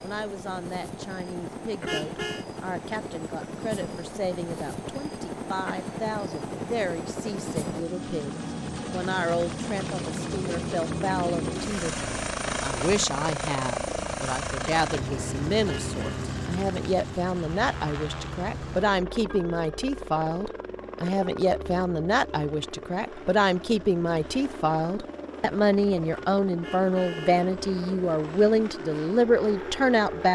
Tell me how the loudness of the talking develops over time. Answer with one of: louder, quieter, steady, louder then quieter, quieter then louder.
louder.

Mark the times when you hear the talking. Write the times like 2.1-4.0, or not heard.
0.0-30.3.